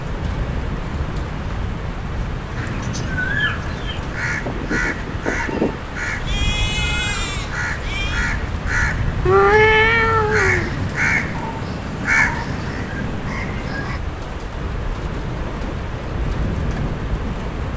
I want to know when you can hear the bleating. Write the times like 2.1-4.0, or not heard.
2.8-8.2.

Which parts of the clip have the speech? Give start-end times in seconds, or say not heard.
not heard.